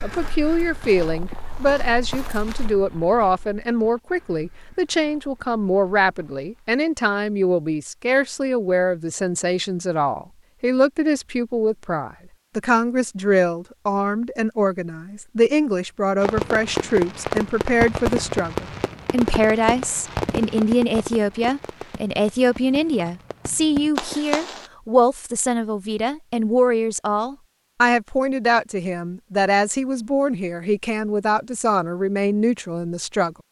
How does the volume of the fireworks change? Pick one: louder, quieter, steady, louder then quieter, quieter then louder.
quieter then louder.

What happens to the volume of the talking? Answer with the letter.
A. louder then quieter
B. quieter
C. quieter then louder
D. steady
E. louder
D.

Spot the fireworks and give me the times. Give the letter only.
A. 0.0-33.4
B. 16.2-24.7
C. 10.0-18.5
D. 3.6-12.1
B.